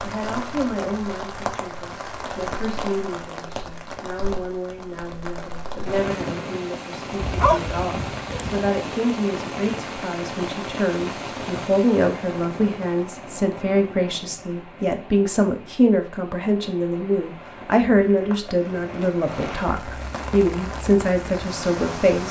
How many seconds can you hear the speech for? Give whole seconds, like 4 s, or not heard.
22 s.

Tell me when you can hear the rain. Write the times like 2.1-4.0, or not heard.
0.0-22.2.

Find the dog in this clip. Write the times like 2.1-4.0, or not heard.
7.2-8.7.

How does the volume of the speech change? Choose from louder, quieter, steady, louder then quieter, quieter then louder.
louder.